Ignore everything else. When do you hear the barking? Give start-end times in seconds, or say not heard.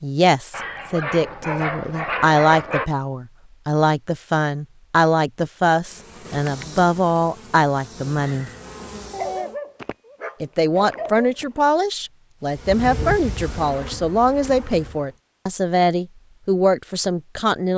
0.5-2.9, 9.1-11.7.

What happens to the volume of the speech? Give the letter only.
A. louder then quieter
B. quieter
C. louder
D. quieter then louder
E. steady
E.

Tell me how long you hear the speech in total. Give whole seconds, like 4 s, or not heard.
16 s.